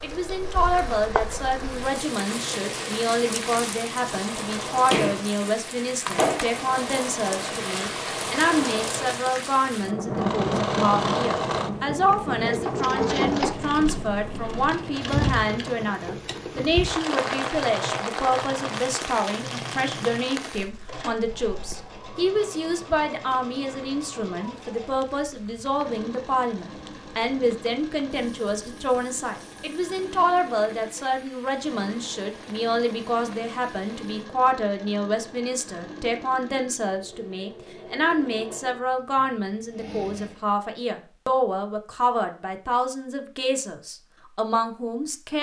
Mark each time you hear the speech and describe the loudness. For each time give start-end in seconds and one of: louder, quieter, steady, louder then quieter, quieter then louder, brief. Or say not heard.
0.0-45.3 steady.